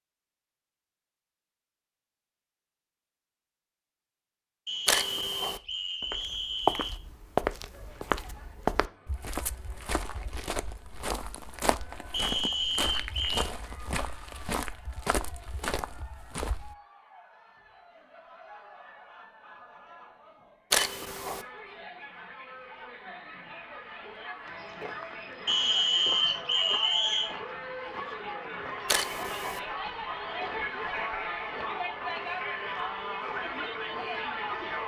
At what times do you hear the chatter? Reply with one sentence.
The chatter can be heard from 7.0 to 34.8 s.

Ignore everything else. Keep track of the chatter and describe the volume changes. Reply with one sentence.
The volume of the chatter goes up.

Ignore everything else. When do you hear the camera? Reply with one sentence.
You can hear the camera from 4.8 to 5.6 s, from 20.7 to 21.4 s and from 28.9 to 29.6 s.